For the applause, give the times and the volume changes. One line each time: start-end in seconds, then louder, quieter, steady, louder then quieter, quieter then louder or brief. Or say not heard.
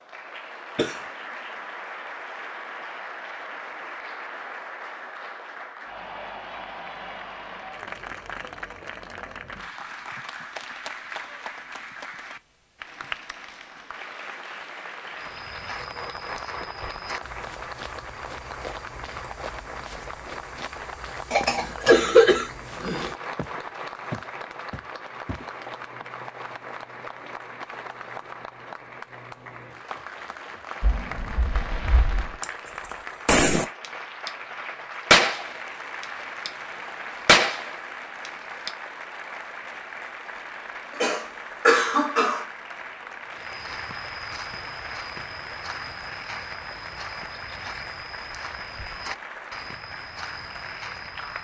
0.0-51.3 steady.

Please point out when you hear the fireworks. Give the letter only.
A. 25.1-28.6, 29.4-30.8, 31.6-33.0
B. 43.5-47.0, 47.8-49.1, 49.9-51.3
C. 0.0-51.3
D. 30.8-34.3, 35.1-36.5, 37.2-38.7
D.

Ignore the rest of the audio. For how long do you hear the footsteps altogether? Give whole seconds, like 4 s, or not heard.
19 s.